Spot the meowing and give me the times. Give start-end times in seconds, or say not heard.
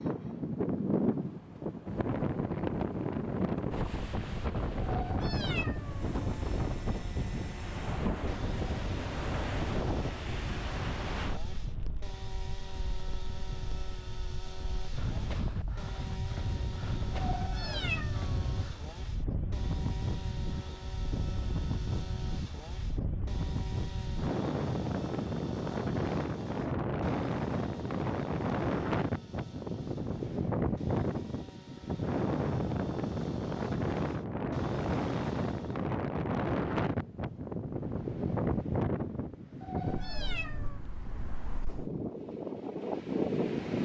4.8-6.2, 17.1-18.6, 39.6-40.8.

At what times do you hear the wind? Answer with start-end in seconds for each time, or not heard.
0.0-43.7.